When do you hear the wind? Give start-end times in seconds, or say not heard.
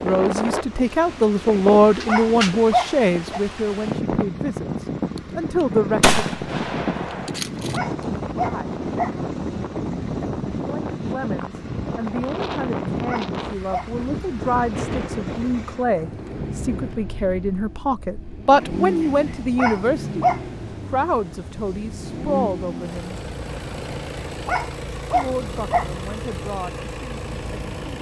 0.0-27.9.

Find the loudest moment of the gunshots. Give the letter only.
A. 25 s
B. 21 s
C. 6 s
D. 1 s
C.